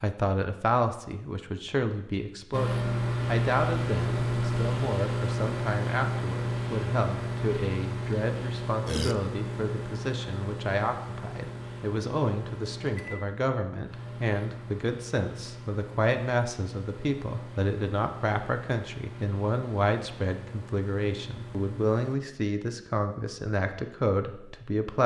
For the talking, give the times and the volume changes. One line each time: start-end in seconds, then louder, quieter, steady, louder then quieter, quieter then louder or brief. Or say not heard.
0.0-25.0 steady.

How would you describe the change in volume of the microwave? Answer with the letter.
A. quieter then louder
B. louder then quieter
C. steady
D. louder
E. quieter
E.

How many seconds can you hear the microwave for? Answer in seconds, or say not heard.
20 s.